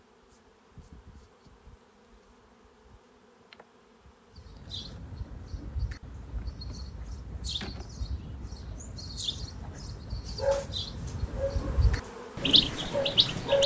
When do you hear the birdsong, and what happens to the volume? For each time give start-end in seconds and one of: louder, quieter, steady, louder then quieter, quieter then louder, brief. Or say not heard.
4.3-13.6 louder.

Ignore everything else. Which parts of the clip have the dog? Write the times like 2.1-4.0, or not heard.
10.3-13.6.